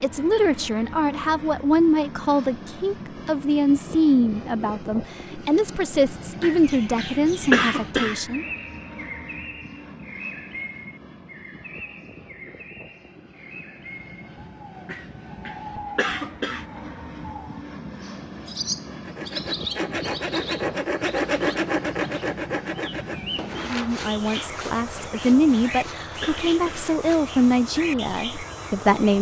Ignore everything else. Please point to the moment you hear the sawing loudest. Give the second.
21 s.